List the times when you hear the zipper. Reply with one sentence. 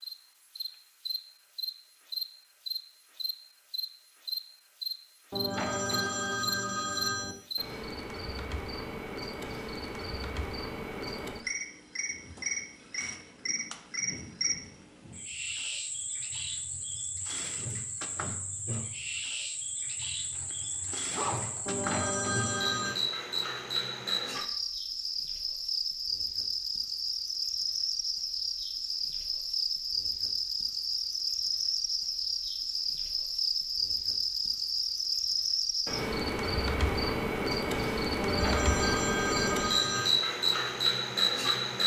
You can hear the zipper from 20.4 to 21.9 s.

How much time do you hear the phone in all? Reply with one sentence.
You can hear the phone for 5 seconds altogether.